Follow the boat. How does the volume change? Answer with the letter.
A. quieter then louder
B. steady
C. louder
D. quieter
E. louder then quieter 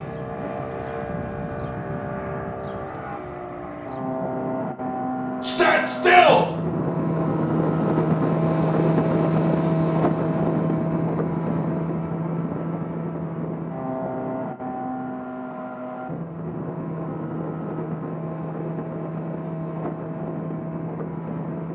E.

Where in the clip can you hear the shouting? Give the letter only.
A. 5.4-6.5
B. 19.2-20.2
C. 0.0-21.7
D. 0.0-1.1
A.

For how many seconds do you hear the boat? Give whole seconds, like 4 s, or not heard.
22 s.